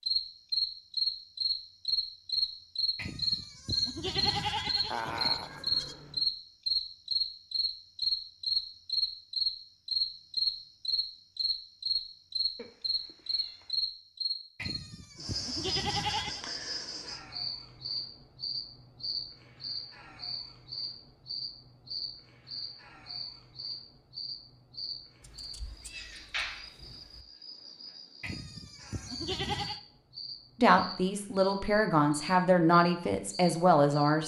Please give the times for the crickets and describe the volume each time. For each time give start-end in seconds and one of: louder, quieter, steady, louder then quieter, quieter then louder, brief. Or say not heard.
0.0-34.2 quieter.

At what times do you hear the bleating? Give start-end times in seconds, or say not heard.
3.0-6.0, 14.6-16.4, 28.2-29.8.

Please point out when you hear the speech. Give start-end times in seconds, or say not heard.
30.6-34.2.